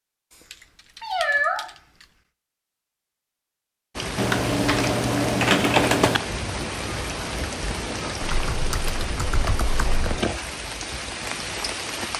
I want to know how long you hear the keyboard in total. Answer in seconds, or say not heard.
5 s.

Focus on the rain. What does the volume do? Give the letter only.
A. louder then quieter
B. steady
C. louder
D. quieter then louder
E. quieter
B.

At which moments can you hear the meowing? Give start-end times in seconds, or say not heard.
1.0-1.6.